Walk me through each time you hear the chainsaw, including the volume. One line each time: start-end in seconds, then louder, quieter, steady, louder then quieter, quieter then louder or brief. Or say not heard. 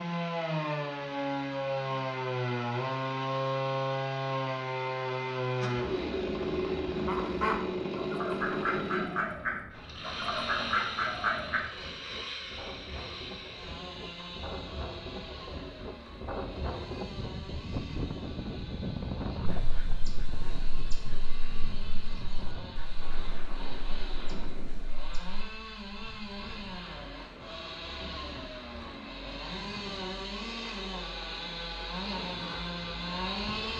0.0-33.7 quieter then louder.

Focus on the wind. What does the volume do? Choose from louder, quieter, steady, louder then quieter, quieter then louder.
louder then quieter.